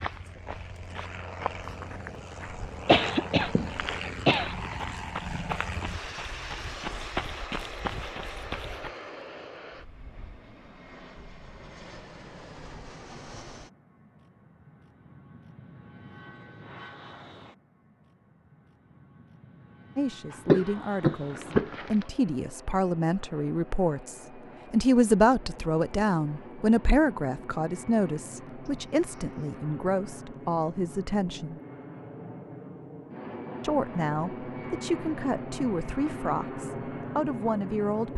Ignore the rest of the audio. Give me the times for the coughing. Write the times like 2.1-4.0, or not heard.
2.9-4.8, 20.3-22.1, 28.6-29.6.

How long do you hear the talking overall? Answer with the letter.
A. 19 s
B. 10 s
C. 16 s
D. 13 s
C.